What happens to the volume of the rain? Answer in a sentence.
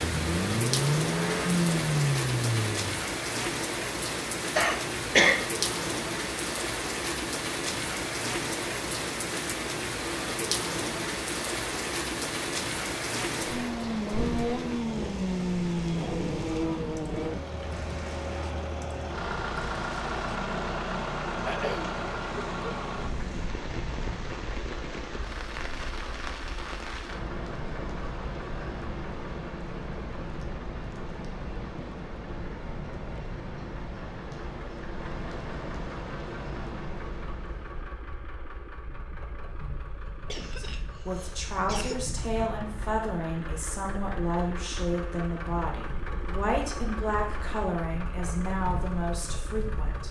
The loudness of the rain goes down.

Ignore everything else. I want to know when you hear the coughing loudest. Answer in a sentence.
The loudest moment of the coughing is at 5 seconds.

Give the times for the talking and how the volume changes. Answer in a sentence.
The talking can be heard from 40.5 to 50.0 s, at a steady volume.